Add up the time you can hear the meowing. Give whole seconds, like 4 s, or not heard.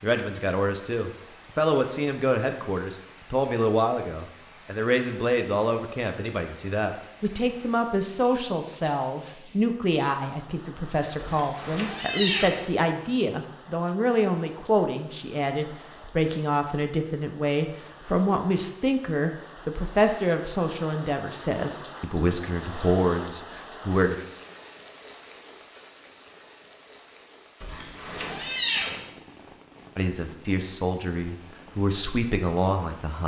3 s.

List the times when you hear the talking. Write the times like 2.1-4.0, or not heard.
0.0-24.1, 29.9-33.2.